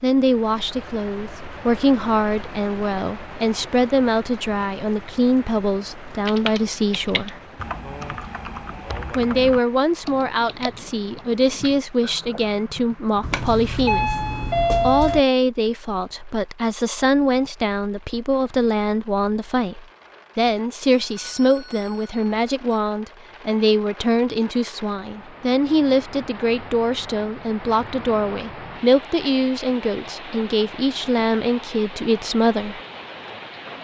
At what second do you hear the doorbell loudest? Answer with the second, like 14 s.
15 s.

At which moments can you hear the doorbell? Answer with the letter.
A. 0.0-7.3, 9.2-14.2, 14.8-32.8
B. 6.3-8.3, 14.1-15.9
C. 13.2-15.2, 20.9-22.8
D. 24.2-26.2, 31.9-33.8
C.